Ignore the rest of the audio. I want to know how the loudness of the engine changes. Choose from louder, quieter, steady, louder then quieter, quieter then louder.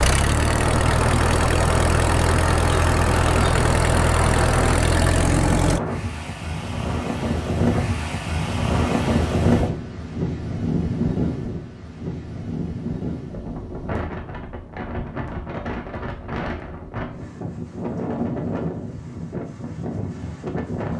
steady.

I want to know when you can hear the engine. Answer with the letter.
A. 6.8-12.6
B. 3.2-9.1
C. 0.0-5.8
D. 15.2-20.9
C.